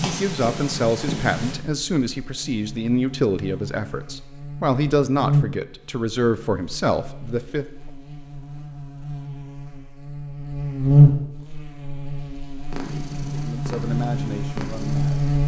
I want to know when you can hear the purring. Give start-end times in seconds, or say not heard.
0.0-1.6, 12.7-15.4.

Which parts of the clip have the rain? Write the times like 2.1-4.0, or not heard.
not heard.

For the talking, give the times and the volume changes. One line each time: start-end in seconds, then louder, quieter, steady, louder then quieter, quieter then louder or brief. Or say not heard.
0.0-7.7 steady
13.3-15.3 brief.